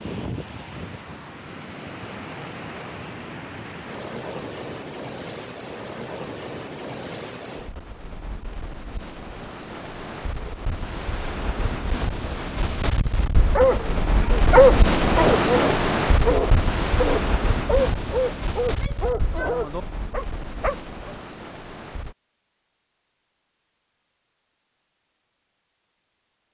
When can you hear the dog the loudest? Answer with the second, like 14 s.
15 s.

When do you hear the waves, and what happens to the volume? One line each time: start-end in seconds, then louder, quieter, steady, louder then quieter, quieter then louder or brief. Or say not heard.
0.0-22.1 louder then quieter.